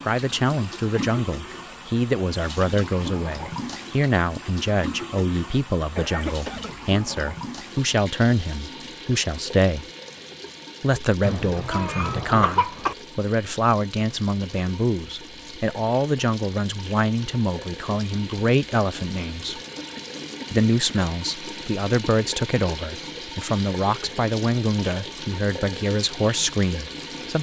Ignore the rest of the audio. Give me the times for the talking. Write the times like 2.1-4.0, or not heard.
0.0-9.8, 10.8-19.6, 20.5-27.3.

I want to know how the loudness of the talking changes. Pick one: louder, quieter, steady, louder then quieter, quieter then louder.
steady.